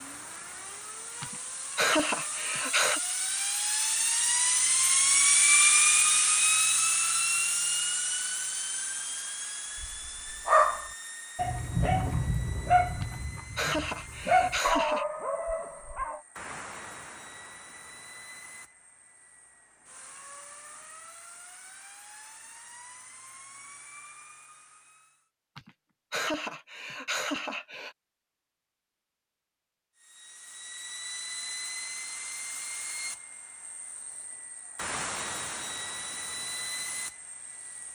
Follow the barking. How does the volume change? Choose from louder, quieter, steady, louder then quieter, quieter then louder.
quieter.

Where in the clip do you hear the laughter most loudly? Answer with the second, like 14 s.
2 s.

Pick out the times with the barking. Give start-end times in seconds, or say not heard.
9.8-16.2.